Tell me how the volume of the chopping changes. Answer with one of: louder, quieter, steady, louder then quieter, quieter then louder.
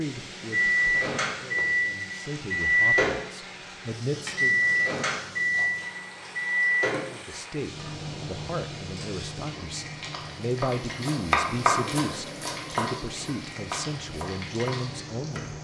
quieter.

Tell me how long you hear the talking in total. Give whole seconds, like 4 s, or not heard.
13 s.